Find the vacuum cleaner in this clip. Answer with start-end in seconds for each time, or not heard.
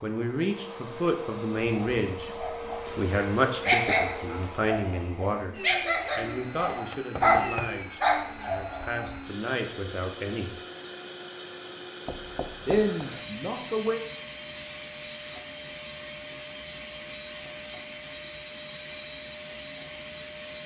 0.0-20.6.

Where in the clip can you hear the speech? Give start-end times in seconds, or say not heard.
0.0-5.5, 6.2-10.6, 12.7-14.0.